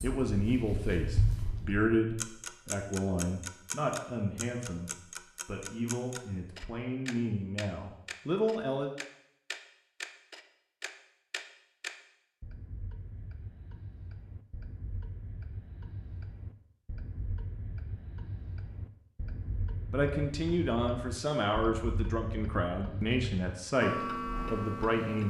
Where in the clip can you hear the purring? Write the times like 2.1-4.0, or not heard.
0.0-1.9.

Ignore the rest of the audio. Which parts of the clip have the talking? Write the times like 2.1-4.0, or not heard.
0.0-8.9, 19.9-25.2.